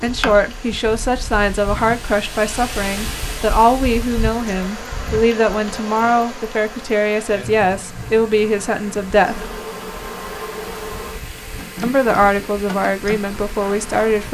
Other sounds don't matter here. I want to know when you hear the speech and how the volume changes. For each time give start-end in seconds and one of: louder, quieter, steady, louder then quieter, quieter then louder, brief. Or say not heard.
0.0-9.5 steady
11.8-14.2 brief.